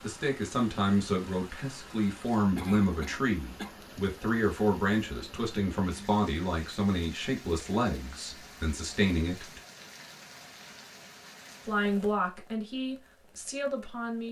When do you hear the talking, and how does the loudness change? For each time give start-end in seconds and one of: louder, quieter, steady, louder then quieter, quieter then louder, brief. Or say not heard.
0.0-9.6 steady
11.7-14.2 brief.